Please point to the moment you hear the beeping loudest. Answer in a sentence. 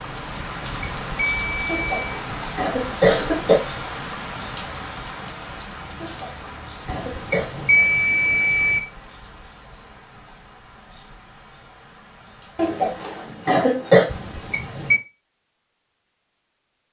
The loudest moment of the beeping is at 8 seconds.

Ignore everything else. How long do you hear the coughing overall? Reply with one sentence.
You can hear the coughing for 5 seconds altogether.